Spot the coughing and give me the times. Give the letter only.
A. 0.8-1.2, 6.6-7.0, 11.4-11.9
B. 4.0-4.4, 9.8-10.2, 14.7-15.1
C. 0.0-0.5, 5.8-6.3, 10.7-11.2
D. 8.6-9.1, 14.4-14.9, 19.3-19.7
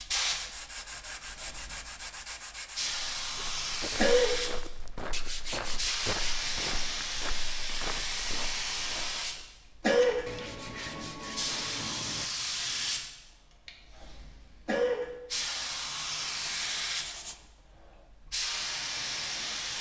B.